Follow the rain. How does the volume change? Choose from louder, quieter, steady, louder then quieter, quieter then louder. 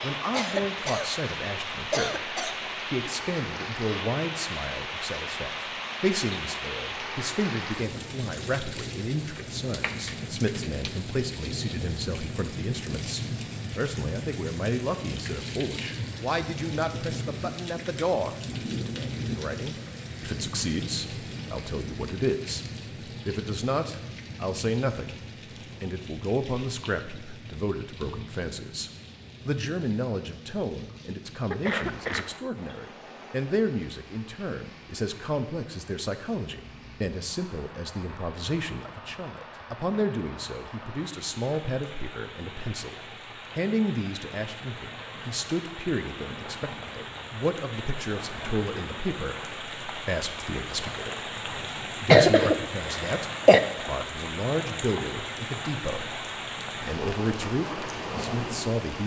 quieter then louder.